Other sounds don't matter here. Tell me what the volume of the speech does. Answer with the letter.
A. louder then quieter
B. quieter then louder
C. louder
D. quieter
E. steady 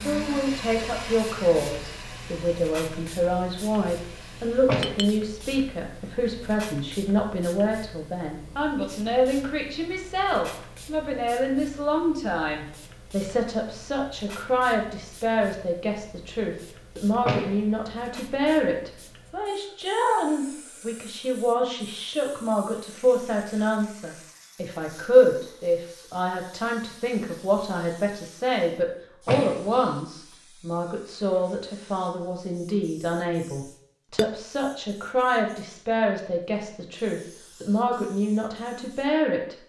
E.